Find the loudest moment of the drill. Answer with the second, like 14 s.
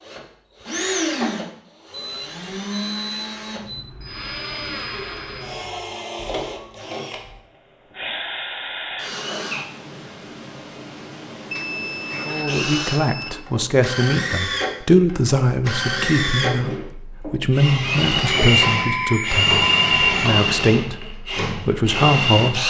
20 s.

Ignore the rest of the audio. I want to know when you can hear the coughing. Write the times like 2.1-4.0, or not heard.
0.6-1.4, 11.6-12.7.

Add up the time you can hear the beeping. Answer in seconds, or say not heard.
6 s.